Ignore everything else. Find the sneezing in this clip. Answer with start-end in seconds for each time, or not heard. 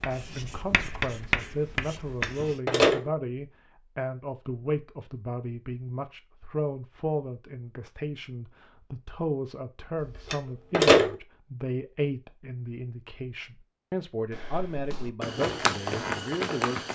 not heard.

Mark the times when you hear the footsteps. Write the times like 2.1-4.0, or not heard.
14.3-16.9.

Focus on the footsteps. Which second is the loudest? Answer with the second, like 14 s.
16 s.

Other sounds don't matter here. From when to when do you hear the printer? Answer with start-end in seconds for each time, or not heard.
not heard.